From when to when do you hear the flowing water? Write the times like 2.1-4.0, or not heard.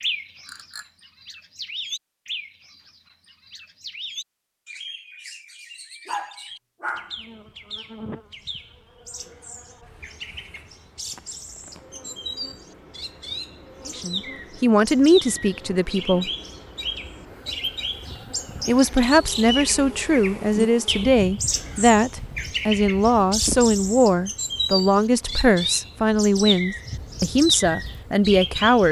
not heard.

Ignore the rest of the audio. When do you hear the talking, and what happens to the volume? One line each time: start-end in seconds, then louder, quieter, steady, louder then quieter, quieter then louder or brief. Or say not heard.
13.8-16.3 brief
18.6-28.8 steady.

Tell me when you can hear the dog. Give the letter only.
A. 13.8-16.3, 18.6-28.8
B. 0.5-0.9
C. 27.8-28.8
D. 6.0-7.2
D.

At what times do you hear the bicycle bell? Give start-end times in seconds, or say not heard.
0.5-0.9.